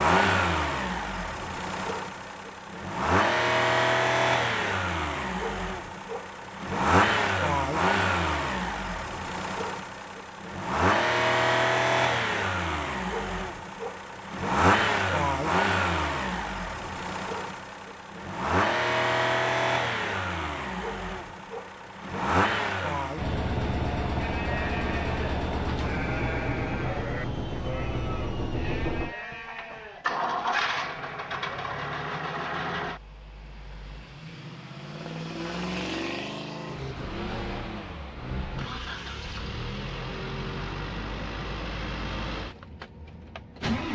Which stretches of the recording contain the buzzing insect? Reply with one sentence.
You can't hear the buzzing insect here.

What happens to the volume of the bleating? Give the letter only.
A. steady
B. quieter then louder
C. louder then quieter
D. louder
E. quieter
E.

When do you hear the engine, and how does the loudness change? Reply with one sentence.
You can hear the engine from 0.0 to 43.9 s, getting quieter.